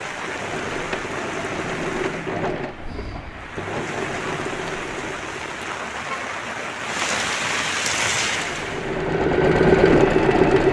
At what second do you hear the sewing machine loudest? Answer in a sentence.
The volume of the sewing machine peaks at 10 seconds.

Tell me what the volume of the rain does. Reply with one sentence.
The loudness of the rain goes down, then up.